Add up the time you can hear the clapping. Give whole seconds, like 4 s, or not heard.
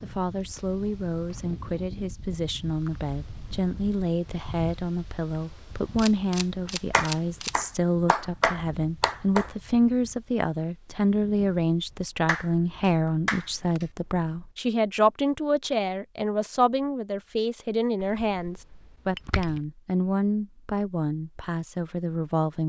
4 s.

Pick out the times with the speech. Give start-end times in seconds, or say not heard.
0.0-22.6.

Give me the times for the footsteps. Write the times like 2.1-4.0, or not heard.
not heard.